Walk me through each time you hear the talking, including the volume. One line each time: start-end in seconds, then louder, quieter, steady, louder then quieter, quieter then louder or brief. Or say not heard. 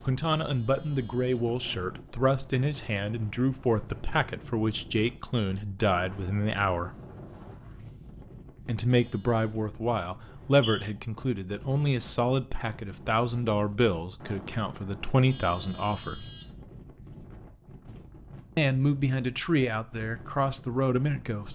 0.0-7.0 steady
8.7-16.3 steady
18.6-21.5 brief.